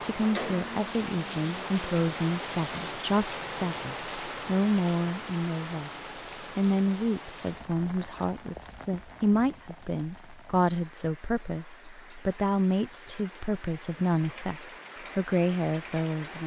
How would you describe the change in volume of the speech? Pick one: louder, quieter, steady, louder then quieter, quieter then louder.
steady.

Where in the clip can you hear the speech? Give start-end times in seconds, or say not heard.
0.0-5.9, 6.5-16.4.